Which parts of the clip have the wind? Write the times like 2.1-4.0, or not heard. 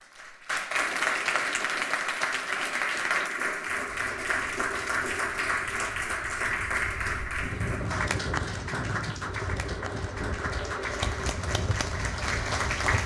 3.7-13.0.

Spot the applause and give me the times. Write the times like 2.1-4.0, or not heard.
0.0-13.0.